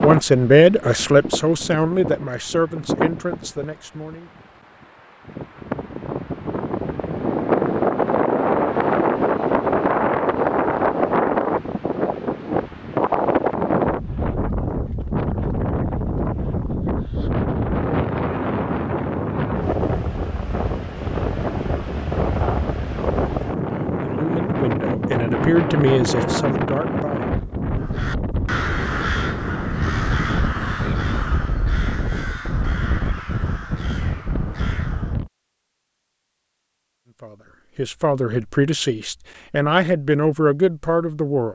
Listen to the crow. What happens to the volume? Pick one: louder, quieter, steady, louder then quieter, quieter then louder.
quieter.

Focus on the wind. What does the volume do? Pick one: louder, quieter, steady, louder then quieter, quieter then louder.
louder then quieter.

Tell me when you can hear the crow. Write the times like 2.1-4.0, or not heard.
27.8-35.2.